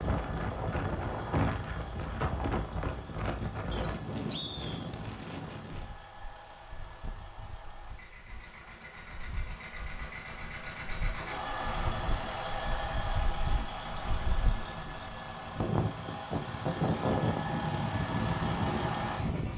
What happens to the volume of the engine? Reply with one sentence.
The loudness of the engine goes up.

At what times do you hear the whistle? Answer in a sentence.
You can hear the whistle from 3.7 to 4.9 s.